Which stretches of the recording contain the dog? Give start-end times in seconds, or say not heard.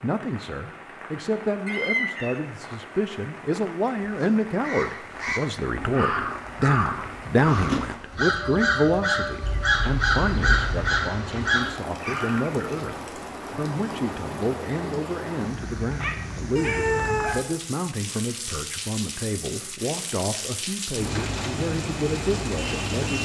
15.8-17.4.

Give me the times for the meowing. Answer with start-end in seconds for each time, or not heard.
1.6-2.5, 9.4-11.1, 16.6-17.4.